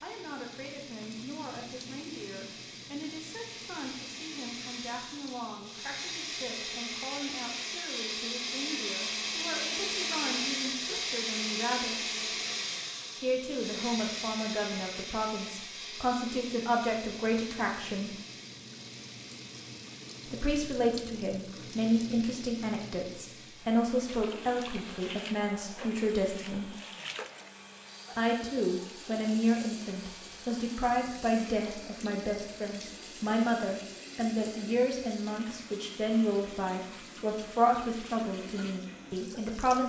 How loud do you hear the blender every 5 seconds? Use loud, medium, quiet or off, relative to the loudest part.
medium, loud, loud, medium, quiet, quiet, quiet, quiet.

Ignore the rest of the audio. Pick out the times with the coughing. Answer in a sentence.
The coughing can't be heard in this clip.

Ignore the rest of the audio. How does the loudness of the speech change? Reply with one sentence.
The loudness of the speech goes up.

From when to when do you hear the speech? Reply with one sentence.
The speech can be heard from 0.0 to 12.2 s, from 13.2 to 18.1 s, from 20.2 to 26.8 s and from 28.1 to 39.8 s.